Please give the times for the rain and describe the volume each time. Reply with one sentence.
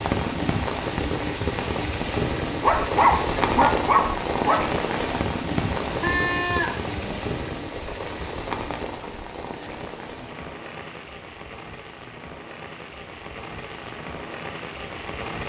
You can hear the rain from 0.0 to 15.4 s, getting quieter.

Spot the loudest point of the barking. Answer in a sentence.
The loudest moment of the barking is at 3 seconds.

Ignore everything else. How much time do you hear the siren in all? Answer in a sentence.
The siren can't be heard in this clip.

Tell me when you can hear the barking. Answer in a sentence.
The barking can be heard from 2.5 to 4.6 s.